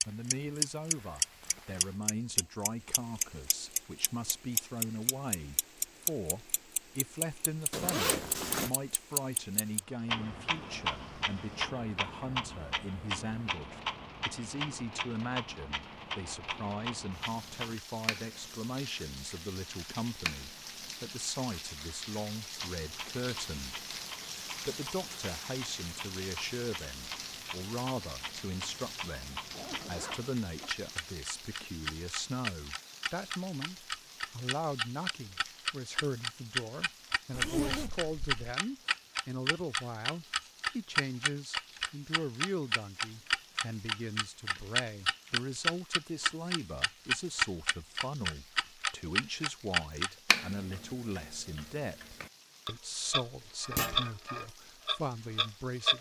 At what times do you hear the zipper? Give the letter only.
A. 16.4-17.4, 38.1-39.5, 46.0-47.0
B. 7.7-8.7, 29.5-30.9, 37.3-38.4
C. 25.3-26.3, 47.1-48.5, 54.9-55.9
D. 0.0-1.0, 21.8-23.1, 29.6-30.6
B.